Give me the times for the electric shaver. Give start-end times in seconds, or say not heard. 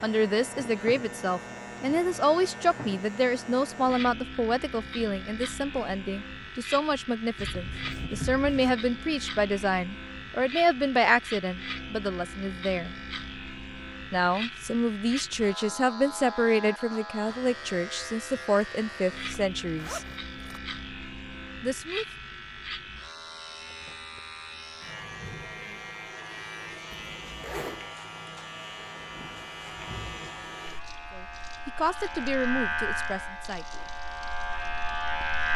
0.0-35.5.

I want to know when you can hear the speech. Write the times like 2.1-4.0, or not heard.
0.0-12.9, 14.1-20.1, 21.6-22.1, 31.1-33.6.